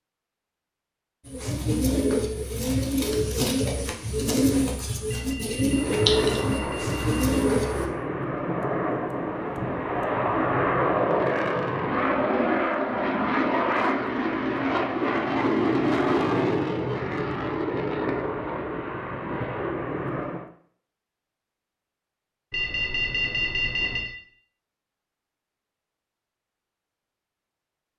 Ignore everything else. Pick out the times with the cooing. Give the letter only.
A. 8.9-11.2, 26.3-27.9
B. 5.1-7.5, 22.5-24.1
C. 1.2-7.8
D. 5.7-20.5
C.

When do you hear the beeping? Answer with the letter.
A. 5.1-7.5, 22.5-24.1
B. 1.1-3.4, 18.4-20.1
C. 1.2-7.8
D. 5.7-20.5
A.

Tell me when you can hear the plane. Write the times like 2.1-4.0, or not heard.
5.7-20.5.